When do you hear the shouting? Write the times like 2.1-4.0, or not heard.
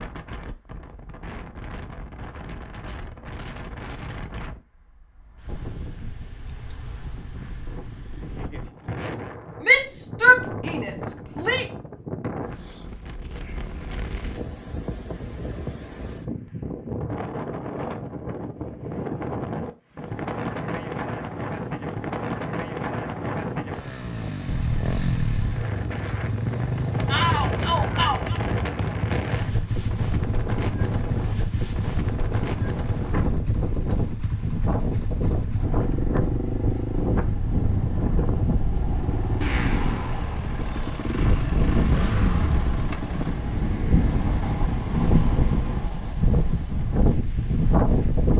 9.6-11.7, 27.1-28.4.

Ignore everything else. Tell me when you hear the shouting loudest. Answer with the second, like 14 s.
10 s.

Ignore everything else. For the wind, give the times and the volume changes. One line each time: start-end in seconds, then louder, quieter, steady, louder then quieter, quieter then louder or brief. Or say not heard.
0.0-48.3 louder.